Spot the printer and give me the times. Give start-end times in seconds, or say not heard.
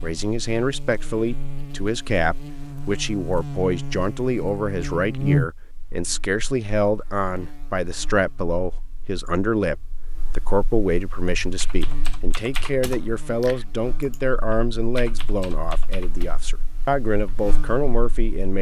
not heard.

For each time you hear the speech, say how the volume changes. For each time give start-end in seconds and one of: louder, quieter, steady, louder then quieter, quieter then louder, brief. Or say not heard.
0.0-18.5 steady.